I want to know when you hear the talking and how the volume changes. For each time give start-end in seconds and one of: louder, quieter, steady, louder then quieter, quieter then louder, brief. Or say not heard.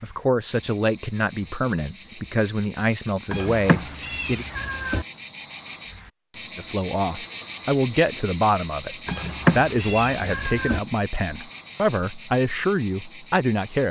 0.0-4.5 steady
6.5-13.8 steady.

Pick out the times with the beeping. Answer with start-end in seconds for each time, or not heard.
not heard.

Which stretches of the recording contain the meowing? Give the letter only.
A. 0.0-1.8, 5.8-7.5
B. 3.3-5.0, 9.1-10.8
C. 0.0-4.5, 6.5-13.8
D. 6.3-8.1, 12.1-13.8
B.